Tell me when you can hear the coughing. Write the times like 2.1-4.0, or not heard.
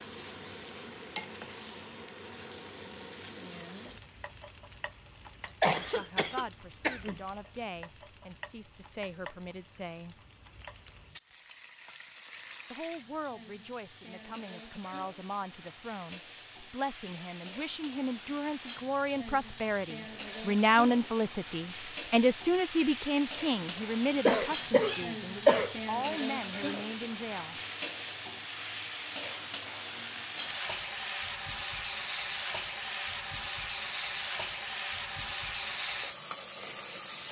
5.6-7.2, 24.2-25.8.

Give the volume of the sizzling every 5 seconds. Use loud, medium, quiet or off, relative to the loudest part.
medium, quiet, quiet, medium, loud, loud, loud, loud.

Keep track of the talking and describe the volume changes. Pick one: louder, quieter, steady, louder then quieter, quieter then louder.
louder then quieter.